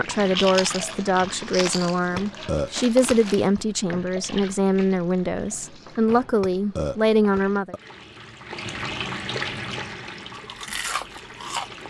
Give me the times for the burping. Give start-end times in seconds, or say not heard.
2.1-3.1, 6.4-7.8.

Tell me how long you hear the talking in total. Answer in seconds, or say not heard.
8 s.